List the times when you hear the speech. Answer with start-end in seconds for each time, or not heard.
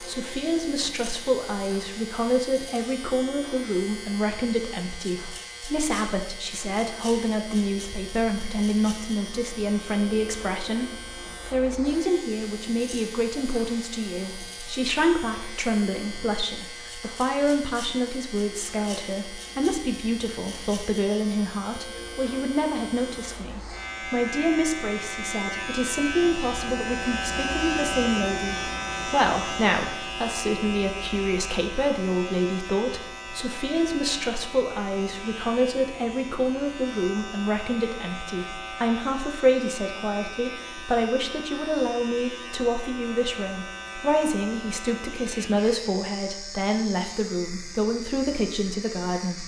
0.0-49.4.